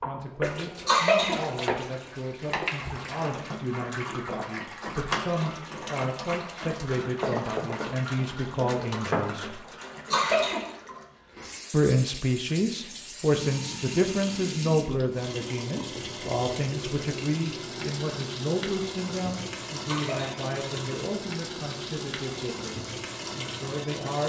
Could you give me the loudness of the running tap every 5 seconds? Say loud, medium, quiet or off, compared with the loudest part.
loud, loud, medium, loud, loud.